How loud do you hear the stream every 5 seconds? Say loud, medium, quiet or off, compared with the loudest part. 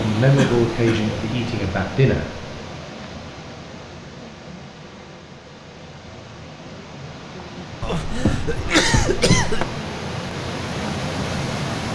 medium, medium, loud.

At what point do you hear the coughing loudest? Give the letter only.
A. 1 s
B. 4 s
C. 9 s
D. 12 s
C.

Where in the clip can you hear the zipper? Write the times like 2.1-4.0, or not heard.
not heard.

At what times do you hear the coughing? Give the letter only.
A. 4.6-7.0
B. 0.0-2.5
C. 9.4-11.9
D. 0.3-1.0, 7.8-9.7
D.